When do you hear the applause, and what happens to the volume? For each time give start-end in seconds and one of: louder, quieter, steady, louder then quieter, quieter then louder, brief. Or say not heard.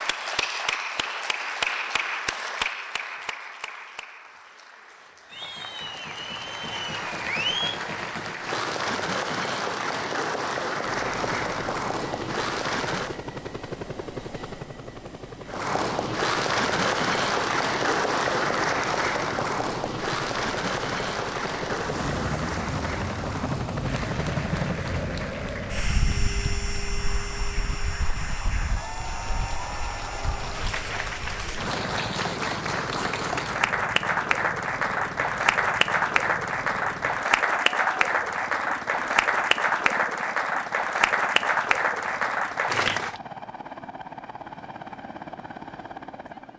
0.0-13.2 quieter then louder
15.4-43.2 quieter then louder.